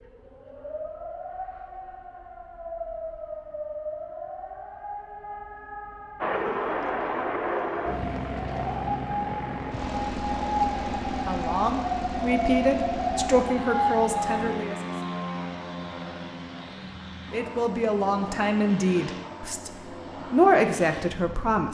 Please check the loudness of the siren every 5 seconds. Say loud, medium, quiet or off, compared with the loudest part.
medium, medium, loud, off, off.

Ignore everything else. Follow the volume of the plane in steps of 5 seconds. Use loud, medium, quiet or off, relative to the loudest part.
off, loud, loud, medium, medium.